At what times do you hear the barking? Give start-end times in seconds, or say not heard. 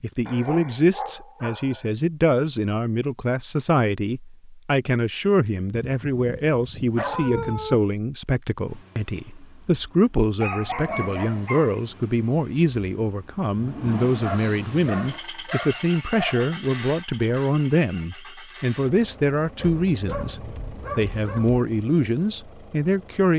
0.2-1.9, 5.8-7.8, 10.3-11.8, 14.2-16.5, 19.6-21.6.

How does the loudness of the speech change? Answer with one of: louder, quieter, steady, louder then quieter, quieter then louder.
steady.